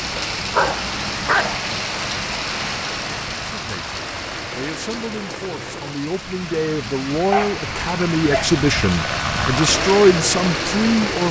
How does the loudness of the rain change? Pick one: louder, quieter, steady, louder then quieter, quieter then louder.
quieter then louder.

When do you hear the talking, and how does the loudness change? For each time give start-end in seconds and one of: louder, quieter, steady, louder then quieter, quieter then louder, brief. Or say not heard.
3.4-11.2 louder.